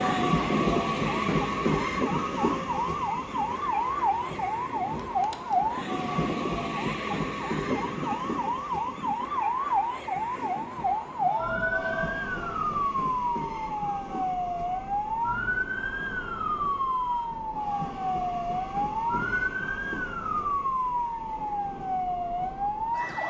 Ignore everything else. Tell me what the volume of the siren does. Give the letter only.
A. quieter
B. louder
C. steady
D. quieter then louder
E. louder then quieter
C.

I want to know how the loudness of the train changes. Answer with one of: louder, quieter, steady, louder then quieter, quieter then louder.
quieter.